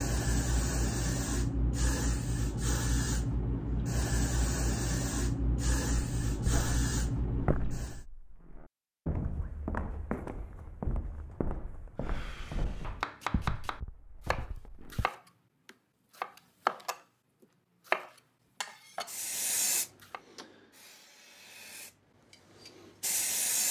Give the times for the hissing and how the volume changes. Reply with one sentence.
You can hear the hissing from 0.0 to 8.1 s, at a steady volume; and from 19.1 to 23.6 s, getting quieter then louder.